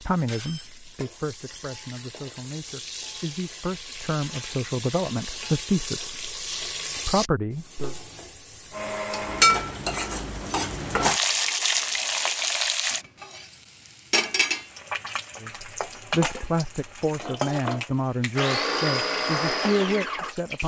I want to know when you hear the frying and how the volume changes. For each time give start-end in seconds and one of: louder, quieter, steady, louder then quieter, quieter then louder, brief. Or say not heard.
0.0-20.6 louder then quieter.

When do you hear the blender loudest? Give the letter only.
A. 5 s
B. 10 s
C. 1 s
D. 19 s
D.